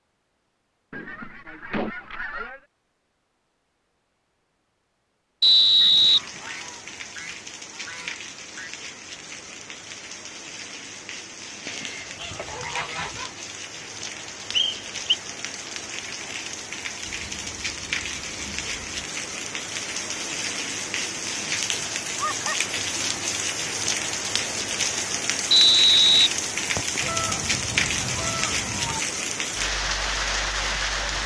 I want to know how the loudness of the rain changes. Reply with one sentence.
The volume of the rain goes up.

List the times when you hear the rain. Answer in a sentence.
The rain can be heard from 6.0 to 31.2 s.